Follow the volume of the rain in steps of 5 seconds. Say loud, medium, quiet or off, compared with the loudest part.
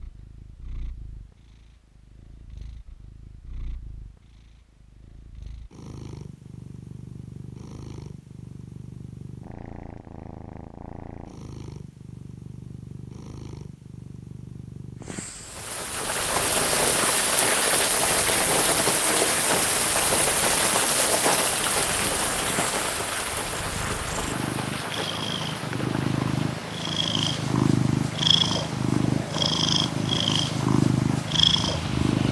off, off, off, loud, loud, quiet, quiet.